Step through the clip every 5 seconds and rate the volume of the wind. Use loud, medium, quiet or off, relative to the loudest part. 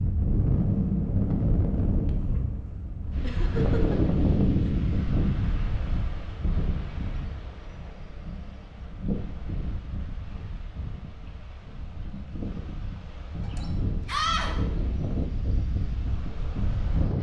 loud, medium, medium, medium.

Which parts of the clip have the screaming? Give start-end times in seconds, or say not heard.
14.1-14.6.